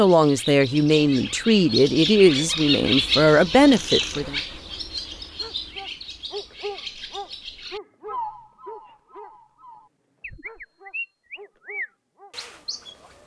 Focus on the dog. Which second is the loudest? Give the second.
7 s.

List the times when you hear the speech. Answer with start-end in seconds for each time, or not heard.
0.0-4.4.